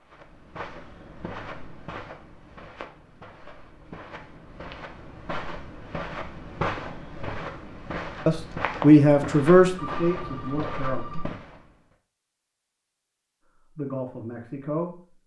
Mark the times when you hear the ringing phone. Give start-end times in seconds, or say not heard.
9.7-11.2.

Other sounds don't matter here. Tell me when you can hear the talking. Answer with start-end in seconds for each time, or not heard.
8.2-11.1, 13.8-15.0.